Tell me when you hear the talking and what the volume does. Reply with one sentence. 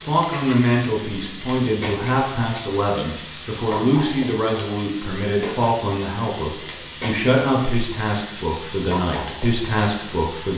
You can hear the talking from 0.1 to 10.5 s, at a steady volume.